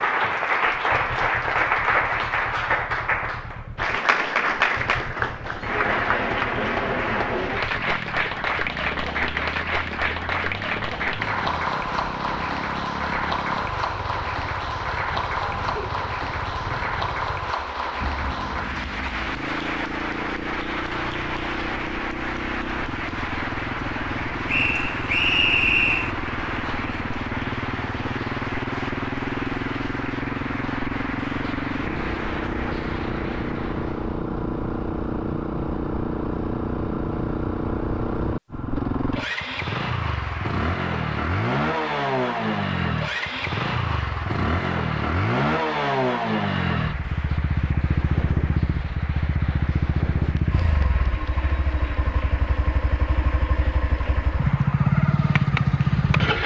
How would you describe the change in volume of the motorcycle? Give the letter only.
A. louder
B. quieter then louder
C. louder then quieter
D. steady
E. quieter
A.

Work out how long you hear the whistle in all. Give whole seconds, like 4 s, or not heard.
2 s.